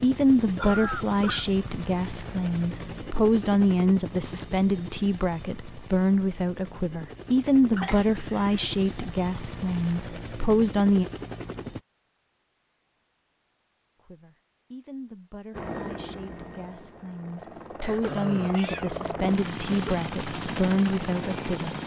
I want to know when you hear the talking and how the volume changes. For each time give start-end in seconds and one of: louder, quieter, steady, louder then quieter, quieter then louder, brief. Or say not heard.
0.0-11.1 steady
14.0-21.8 louder.